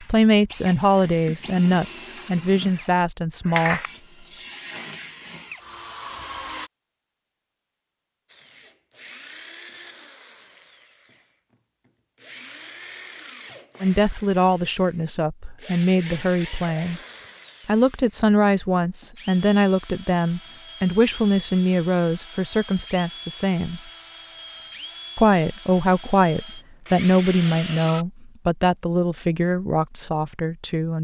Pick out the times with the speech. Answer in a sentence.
You can hear the speech from 0.0 to 4.4 s, from 13.8 to 17.0 s, from 17.6 to 23.8 s and from 25.1 to 31.0 s.